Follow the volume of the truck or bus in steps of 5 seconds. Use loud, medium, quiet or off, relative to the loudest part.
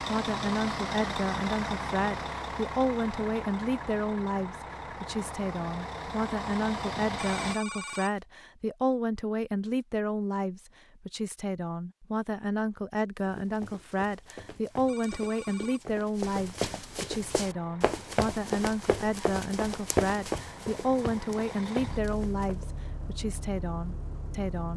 loud, loud, off, quiet, medium.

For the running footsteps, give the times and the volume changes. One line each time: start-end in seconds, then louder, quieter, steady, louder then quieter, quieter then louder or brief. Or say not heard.
13.2-22.6 louder then quieter.